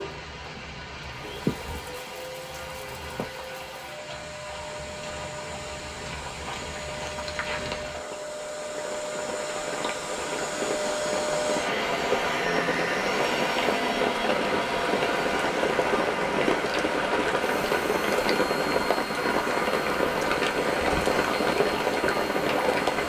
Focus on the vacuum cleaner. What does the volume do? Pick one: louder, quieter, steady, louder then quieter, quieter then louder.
louder then quieter.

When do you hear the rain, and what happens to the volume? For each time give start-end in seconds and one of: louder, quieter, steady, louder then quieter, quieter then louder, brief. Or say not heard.
0.0-23.0 louder.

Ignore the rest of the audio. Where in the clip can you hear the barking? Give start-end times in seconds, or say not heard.
not heard.